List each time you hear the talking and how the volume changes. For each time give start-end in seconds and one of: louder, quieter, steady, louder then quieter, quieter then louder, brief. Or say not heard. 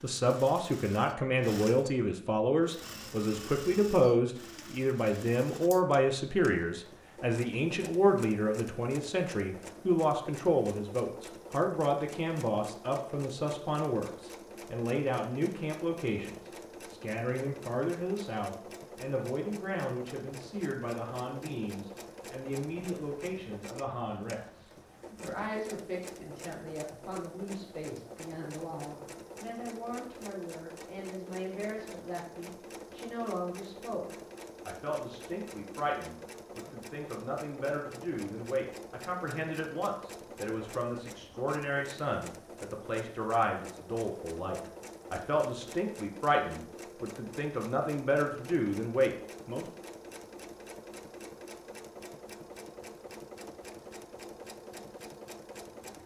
0.0-49.6 quieter then louder.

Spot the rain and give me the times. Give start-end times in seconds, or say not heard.
not heard.